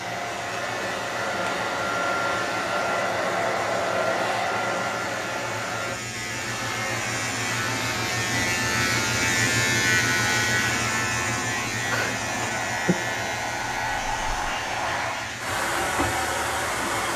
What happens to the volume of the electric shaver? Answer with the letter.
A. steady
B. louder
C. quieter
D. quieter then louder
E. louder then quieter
E.